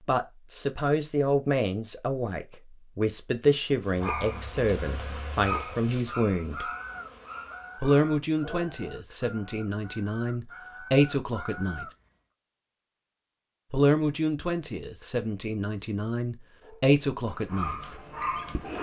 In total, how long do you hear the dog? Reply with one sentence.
The dog can be heard for 7 seconds in total.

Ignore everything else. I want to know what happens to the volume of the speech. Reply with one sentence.
The loudness of the speech stays about the same.